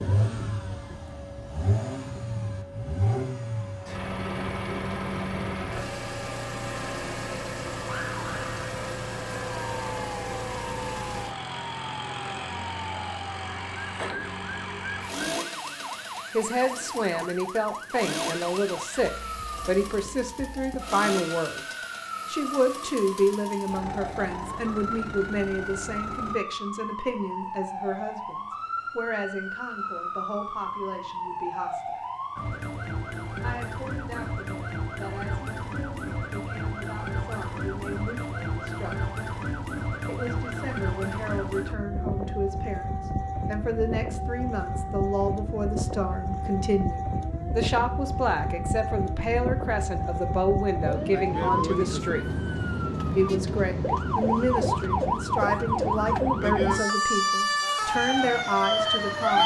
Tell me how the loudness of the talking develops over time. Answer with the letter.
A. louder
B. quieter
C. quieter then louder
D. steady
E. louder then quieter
C.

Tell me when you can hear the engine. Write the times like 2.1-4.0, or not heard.
0.0-26.4.